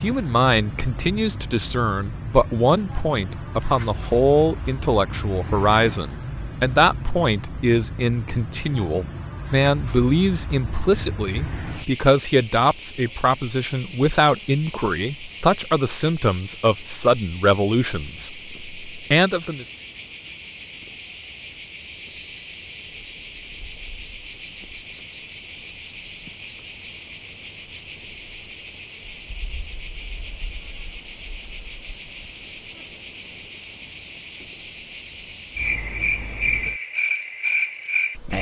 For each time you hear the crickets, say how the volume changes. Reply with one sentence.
You can hear the crickets from 0.0 to 38.3 s, at a steady volume.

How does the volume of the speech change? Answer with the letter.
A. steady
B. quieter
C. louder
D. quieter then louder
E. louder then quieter
A.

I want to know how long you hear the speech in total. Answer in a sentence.
You can hear the speech for 20 seconds altogether.